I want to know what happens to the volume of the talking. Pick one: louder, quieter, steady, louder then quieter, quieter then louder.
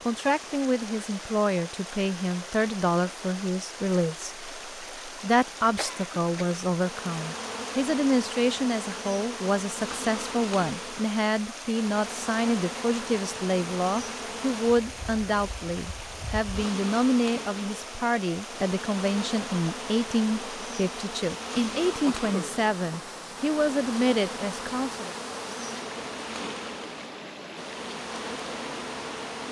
steady.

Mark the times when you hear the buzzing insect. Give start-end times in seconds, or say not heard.
6.8-29.4.